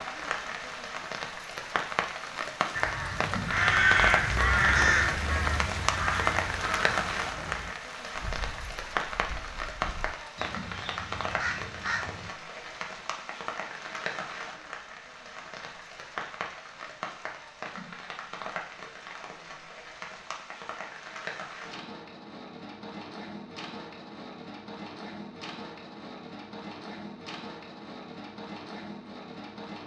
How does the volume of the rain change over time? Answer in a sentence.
The loudness of the rain goes down.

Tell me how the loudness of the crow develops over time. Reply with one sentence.
The volume of the crow goes down, then up.